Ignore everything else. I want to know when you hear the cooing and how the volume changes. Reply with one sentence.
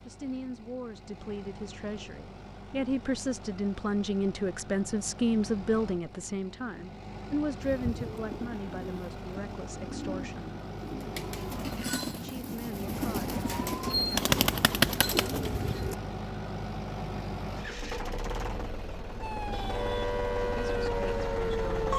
You can hear the cooing from 7.6 to 15.9 s, getting louder.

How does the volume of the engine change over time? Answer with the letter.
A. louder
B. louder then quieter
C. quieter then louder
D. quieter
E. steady
A.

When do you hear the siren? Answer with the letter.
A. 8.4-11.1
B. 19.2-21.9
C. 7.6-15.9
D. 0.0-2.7
B.